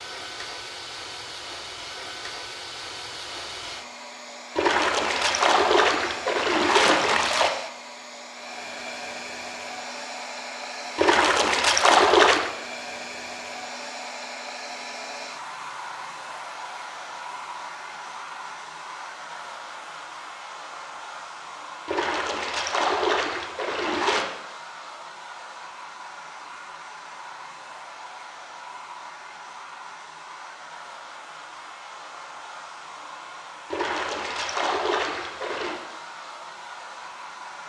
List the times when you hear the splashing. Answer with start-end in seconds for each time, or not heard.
4.5-7.5, 10.9-12.5, 21.9-24.2, 33.7-35.8.